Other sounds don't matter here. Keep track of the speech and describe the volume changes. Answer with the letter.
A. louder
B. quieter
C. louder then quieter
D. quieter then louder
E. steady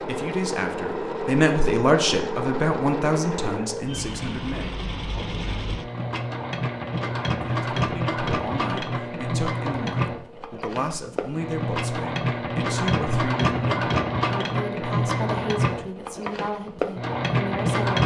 B.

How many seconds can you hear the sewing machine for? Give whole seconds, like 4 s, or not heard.
18 s.